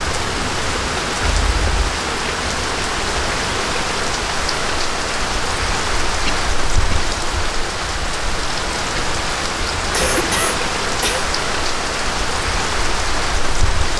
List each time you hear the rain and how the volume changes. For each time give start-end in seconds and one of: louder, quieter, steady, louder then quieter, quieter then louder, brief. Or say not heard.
0.0-13.9 steady.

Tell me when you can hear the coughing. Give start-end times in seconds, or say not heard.
1.2-1.8, 6.2-7.2, 9.9-11.2.